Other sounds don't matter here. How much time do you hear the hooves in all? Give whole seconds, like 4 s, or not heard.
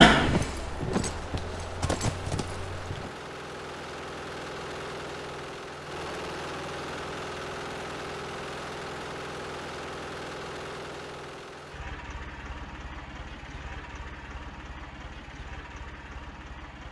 3 s.